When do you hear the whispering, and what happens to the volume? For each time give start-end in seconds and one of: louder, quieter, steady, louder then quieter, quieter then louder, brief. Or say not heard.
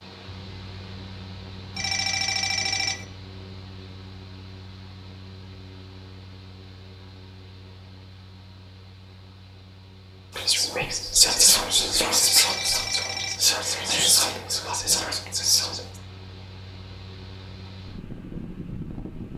10.3-15.8 quieter.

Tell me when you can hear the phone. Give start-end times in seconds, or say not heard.
1.7-3.0, 12.2-13.4.